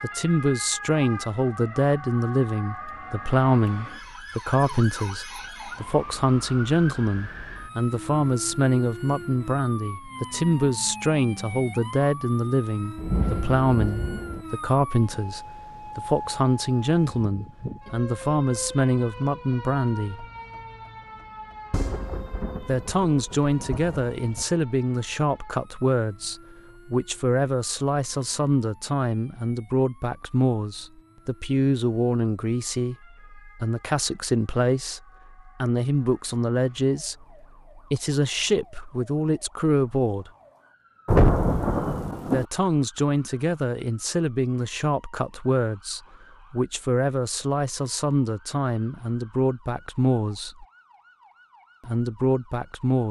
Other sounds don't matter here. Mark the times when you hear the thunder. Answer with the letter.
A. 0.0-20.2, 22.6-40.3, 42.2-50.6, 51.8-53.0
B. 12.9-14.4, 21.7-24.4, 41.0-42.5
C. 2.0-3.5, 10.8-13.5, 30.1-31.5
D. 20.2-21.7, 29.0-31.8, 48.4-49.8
B.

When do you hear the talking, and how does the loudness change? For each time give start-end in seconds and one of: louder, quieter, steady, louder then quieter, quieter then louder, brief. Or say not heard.
0.0-20.2 steady
22.6-40.3 steady
42.2-50.6 steady
51.8-53.0 brief.